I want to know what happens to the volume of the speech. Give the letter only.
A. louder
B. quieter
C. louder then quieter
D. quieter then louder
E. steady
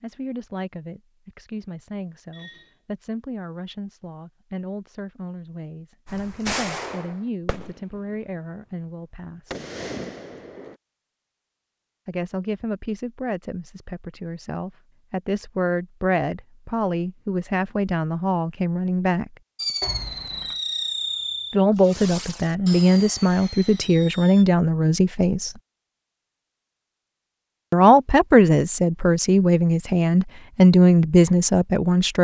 A.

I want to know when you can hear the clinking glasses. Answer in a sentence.
You can hear the clinking glasses from 2.3 to 2.8 s and from 19.8 to 20.6 s.